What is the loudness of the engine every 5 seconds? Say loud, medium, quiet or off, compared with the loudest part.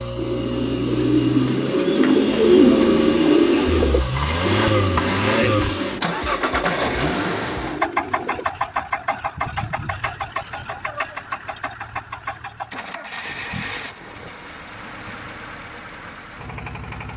loud, loud, medium, quiet.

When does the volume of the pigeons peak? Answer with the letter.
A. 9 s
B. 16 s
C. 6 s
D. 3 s
D.